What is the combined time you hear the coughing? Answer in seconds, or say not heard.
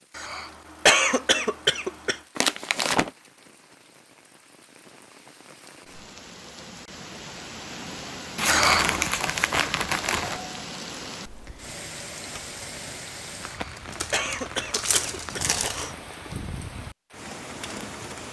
5 s.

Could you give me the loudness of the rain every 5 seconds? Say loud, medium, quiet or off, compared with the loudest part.
quiet, loud, loud, loud.